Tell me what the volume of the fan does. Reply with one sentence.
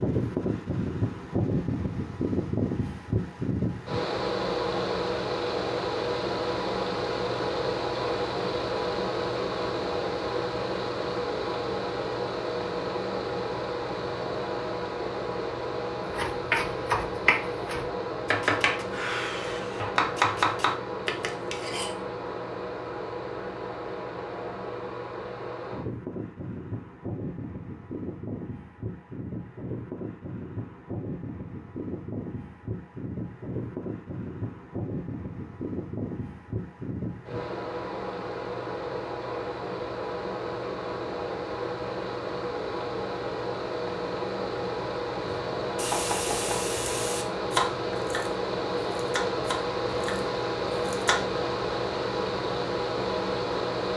The volume of the fan goes down, then up.